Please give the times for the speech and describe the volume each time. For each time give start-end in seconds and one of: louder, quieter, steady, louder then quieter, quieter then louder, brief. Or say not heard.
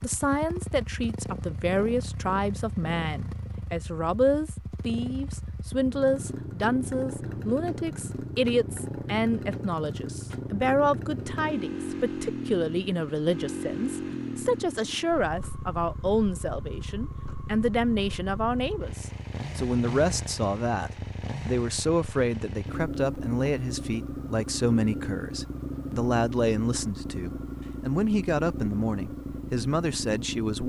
0.0-30.6 steady.